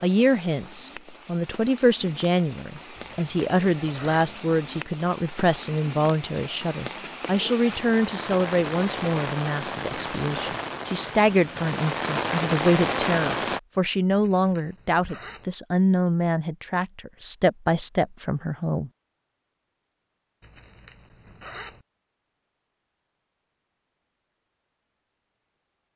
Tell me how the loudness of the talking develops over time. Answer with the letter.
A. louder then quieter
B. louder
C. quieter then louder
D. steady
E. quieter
D.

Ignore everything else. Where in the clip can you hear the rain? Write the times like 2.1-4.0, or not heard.
0.0-13.6.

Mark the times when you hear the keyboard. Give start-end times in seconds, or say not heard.
not heard.